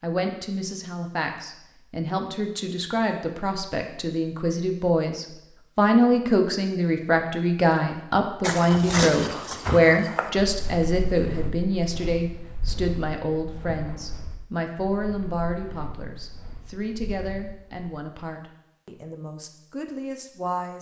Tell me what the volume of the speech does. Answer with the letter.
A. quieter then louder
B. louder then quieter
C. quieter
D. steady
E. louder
B.